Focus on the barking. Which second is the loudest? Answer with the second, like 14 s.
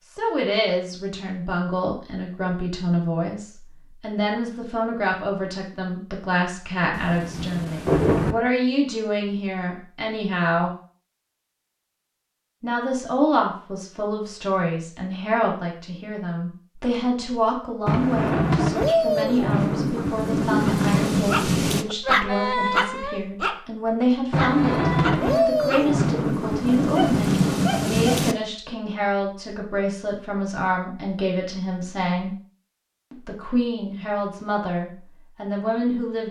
22 s.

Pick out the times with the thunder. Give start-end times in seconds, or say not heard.
6.9-8.3, 17.9-21.9, 24.3-28.4.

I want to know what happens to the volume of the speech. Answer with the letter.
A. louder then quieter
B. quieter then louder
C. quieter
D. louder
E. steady
E.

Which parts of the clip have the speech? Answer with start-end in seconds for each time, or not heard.
0.1-10.7, 12.6-32.4, 33.1-36.2.